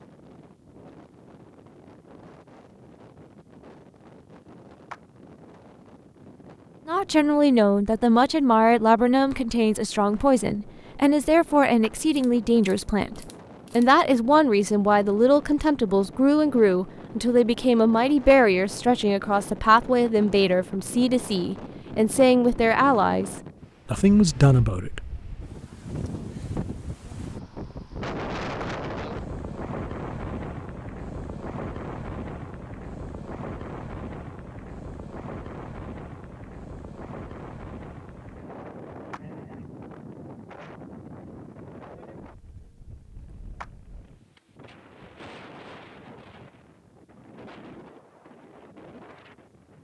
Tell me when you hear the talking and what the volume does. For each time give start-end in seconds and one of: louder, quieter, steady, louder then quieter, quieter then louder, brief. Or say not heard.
6.8-25.1 steady.